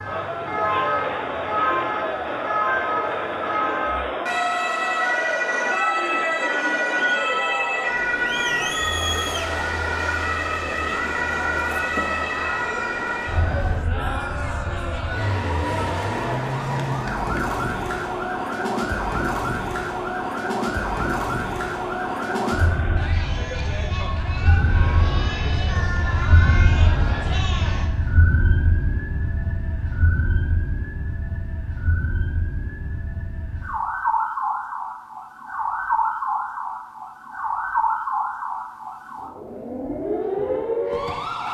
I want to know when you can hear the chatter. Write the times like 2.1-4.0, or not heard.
0.0-27.9.